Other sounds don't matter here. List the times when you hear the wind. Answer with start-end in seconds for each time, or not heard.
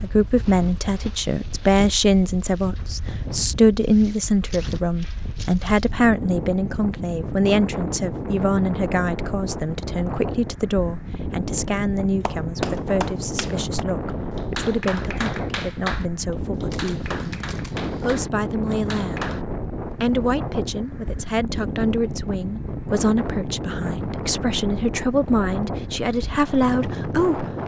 0.0-27.6.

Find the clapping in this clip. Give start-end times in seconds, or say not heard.
12.2-19.4.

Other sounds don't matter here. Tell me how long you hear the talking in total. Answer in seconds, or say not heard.
27 s.